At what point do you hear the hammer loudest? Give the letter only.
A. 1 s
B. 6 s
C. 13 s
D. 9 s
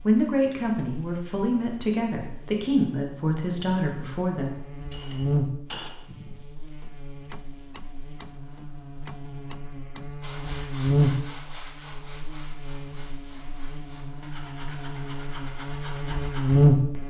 B.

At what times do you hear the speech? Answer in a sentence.
The speech can be heard from 0.1 to 5.2 s.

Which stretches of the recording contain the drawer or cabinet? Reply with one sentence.
The drawer or cabinet can't be heard in this clip.